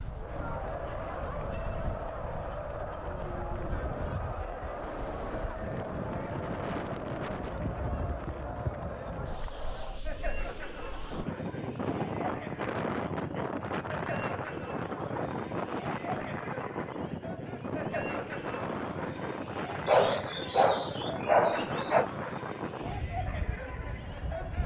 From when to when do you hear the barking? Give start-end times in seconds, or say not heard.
19.9-22.1.